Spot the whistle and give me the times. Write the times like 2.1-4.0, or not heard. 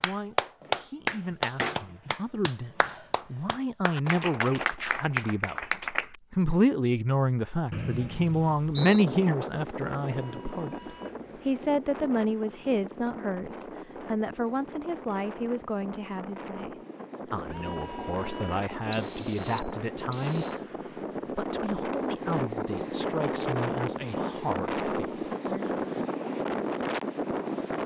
7.7-9.1, 18.9-20.6.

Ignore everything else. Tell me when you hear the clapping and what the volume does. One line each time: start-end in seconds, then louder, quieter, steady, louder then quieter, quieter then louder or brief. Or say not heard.
0.0-6.2 quieter then louder.